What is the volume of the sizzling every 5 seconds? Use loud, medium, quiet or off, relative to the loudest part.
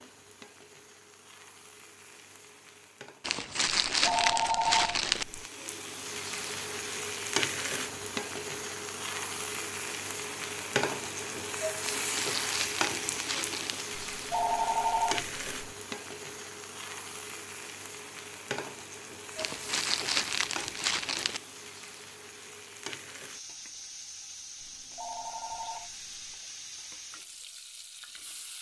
quiet, loud, loud, medium, medium, medium.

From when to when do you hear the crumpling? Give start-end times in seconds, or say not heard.
3.2-5.2, 11.9-13.8, 19.4-21.4.